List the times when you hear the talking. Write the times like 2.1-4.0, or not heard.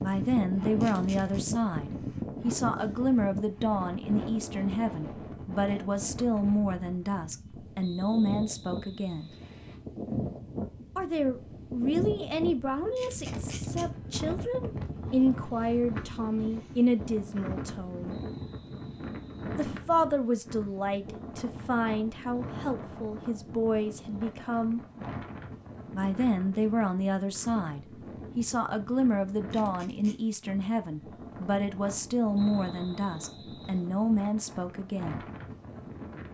0.0-9.3, 10.9-18.1, 19.6-24.8, 25.9-35.2.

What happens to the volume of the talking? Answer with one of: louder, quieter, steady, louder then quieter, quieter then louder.
steady.